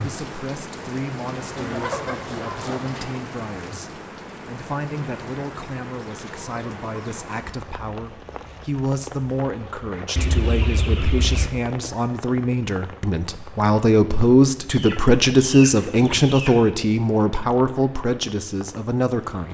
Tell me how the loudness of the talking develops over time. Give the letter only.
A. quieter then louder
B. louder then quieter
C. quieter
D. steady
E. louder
E.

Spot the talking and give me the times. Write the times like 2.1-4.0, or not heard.
0.0-19.4.